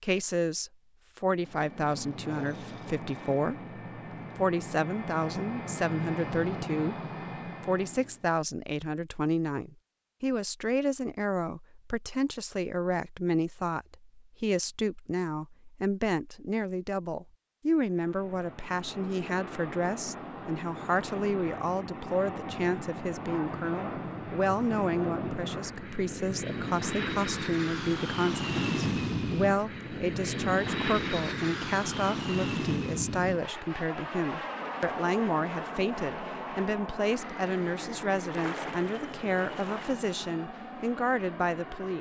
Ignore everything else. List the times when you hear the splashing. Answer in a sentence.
The splashing can be heard from 38.2 to 40.0 s.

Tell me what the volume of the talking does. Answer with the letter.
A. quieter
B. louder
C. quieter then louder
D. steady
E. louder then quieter
D.